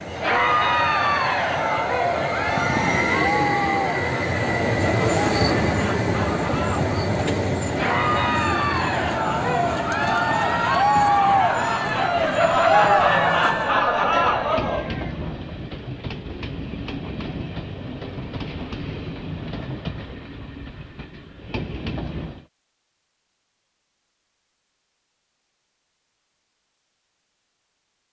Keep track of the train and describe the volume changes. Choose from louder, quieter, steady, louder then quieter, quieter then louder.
quieter.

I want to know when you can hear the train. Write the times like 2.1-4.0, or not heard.
0.0-22.4.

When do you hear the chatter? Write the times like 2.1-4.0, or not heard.
0.1-15.3.